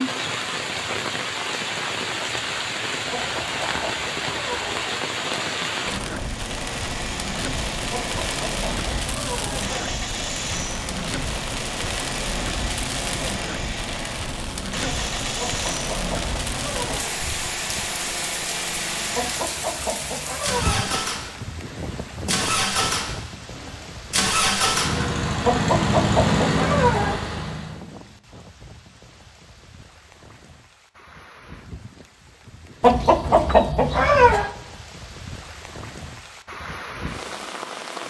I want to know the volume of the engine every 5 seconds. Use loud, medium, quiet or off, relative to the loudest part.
off, medium, medium, medium, loud, loud, off, off.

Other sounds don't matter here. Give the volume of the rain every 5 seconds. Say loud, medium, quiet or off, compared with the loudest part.
loud, loud, loud, loud, medium, quiet, quiet, medium.